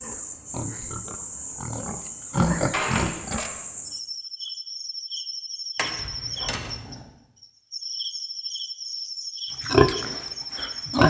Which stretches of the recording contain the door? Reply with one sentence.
The door can be heard from 2.5 to 3.6 s and from 5.8 to 6.8 s.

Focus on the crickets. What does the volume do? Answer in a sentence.
The volume of the crickets stays about the same.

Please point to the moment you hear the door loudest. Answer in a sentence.
The loudest moment of the door is at 3 seconds.